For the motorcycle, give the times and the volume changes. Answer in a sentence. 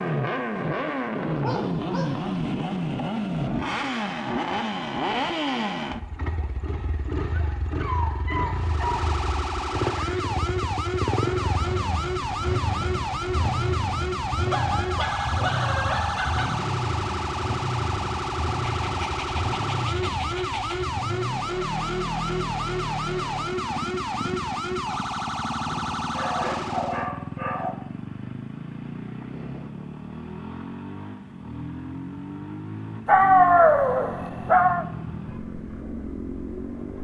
You can hear the motorcycle from 0.0 to 36.9 s, getting quieter.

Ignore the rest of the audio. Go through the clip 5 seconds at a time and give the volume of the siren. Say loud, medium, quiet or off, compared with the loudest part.
off, loud, loud, loud, loud, loud, off, off.